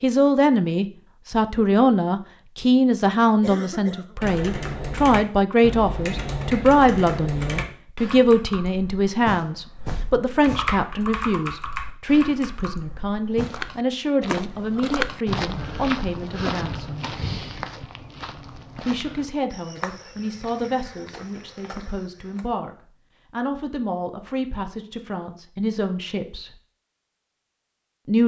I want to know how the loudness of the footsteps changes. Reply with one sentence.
The loudness of the footsteps goes down.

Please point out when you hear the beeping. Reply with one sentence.
The beeping can't be heard in this clip.